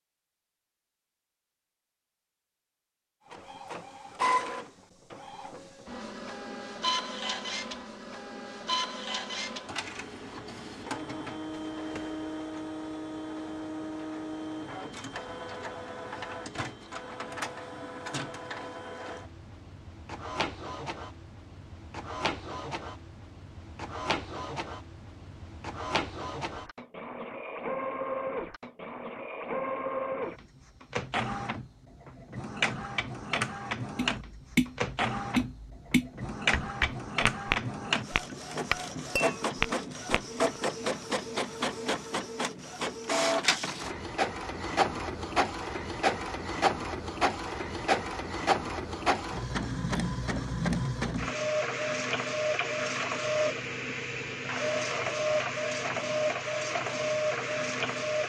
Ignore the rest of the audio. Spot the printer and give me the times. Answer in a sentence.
The printer can be heard from 3.3 to 58.2 s.